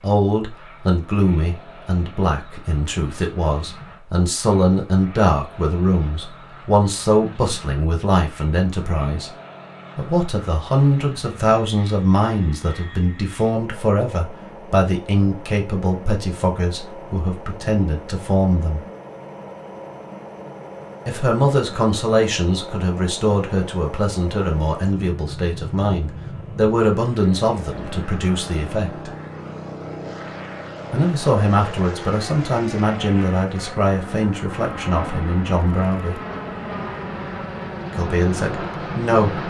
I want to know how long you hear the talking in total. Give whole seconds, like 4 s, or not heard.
33 s.